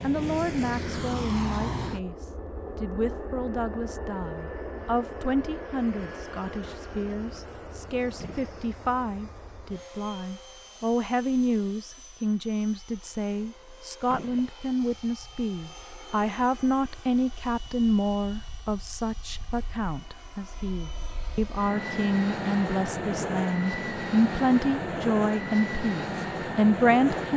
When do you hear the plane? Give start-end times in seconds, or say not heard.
0.0-27.3.